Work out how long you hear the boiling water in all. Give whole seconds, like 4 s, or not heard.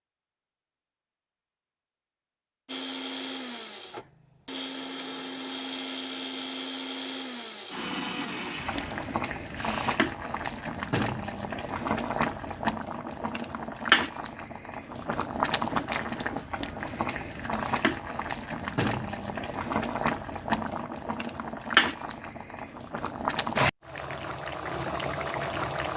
17 s.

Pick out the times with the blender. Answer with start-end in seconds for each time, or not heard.
2.6-10.0.